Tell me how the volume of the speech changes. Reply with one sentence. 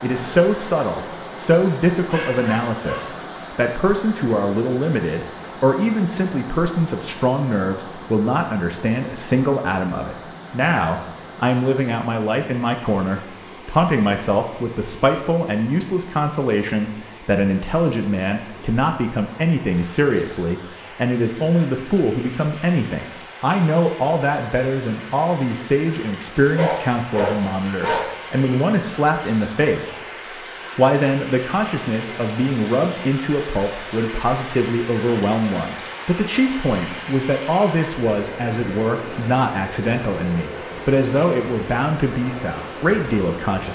The loudness of the speech stays about the same.